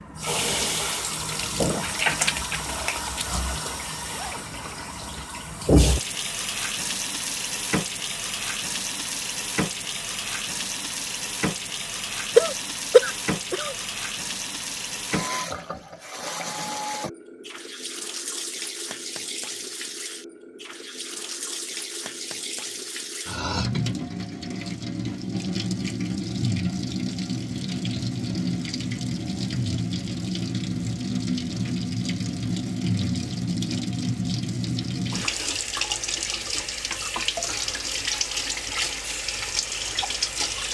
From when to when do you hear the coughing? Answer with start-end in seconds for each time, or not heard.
12.3-13.8.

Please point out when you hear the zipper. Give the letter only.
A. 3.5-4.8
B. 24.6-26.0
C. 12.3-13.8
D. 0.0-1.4
A.